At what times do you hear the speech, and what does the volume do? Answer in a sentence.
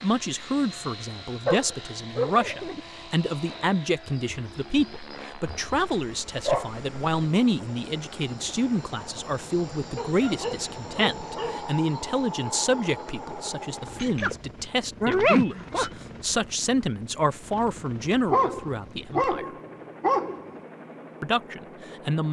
The speech can be heard from 0.0 to 19.4 s, at a steady volume; and briefly from 21.2 to 22.2 s.